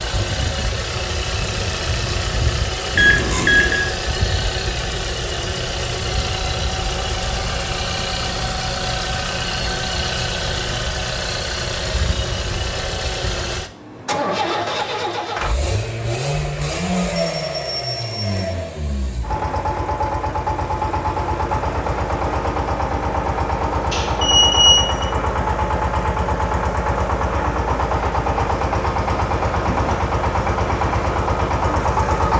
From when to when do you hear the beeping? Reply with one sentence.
You can hear the beeping from 2.9 to 3.9 s, from 17.1 to 18.6 s and from 23.9 to 25.1 s.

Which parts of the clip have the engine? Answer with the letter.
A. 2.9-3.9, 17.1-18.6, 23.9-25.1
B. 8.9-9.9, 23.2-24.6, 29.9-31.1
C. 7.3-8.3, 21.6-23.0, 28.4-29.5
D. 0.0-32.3
D.